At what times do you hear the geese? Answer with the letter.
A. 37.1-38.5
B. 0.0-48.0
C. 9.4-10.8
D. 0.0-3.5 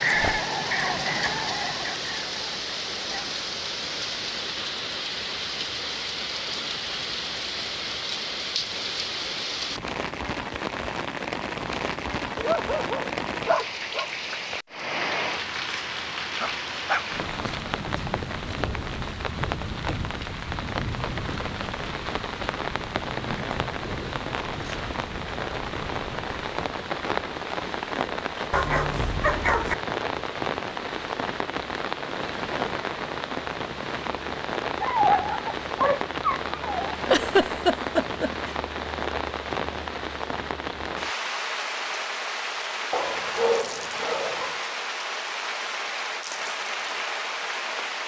D.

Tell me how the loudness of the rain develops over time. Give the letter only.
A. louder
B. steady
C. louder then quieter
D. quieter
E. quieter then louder
B.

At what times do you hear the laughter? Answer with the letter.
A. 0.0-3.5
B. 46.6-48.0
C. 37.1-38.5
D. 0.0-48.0
C.